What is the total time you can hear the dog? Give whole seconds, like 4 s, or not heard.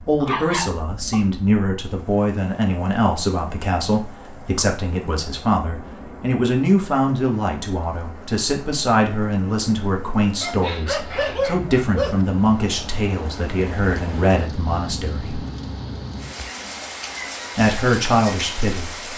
3 s.